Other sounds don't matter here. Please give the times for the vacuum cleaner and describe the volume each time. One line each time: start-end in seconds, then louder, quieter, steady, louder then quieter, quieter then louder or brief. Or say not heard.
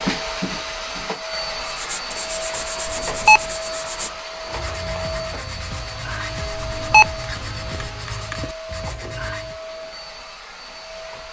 0.0-11.2 quieter.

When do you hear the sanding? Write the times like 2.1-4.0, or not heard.
1.6-9.6.